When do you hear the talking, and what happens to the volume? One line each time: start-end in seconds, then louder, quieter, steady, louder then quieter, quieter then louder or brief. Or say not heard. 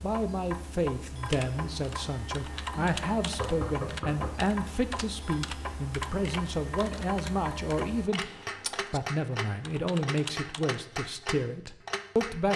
0.0-12.5 steady.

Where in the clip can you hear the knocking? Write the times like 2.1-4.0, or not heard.
3.4-4.3.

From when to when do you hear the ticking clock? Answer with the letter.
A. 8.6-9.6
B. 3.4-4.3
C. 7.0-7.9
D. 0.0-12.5
D.